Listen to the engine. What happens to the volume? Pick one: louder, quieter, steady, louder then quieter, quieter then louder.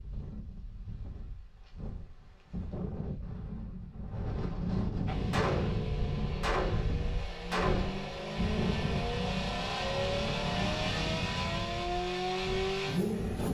louder.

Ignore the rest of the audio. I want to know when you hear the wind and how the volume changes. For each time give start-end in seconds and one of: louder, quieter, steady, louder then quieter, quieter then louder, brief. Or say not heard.
0.0-13.4 louder.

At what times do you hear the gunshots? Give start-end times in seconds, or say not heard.
5.3-8.2.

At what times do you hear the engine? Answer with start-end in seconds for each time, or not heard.
5.0-13.4.